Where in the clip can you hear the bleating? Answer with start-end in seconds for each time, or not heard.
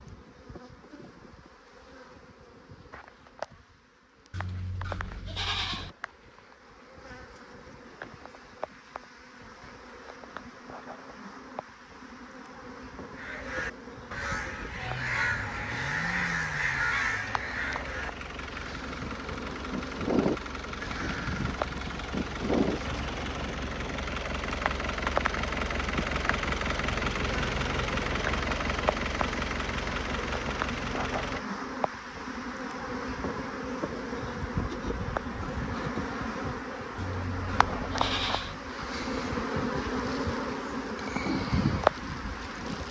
4.3-6.0, 37.0-38.5.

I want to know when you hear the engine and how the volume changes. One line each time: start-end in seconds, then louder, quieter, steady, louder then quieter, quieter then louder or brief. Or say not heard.
14.8-31.4 louder.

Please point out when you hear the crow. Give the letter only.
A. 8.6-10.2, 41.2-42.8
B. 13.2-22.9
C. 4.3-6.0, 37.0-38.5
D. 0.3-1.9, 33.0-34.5
B.